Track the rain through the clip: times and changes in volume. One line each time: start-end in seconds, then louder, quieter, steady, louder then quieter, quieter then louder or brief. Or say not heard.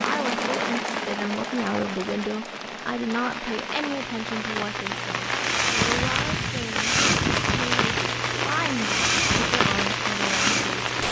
0.0-11.0 louder.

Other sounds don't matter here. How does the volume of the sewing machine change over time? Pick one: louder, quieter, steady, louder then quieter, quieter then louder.
quieter then louder.